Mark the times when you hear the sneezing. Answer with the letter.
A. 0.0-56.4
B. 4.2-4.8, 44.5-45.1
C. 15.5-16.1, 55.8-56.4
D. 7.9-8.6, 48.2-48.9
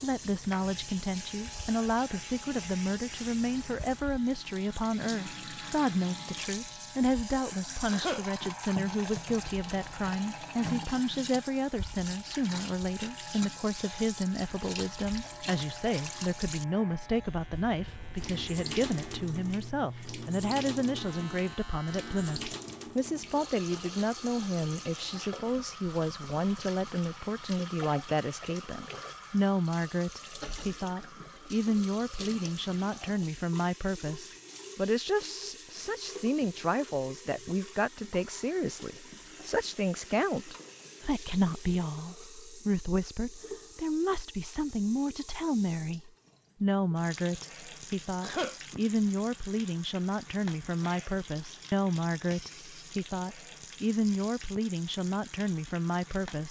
D.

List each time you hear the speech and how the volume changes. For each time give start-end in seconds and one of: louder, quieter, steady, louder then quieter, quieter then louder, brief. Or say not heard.
0.0-56.4 steady.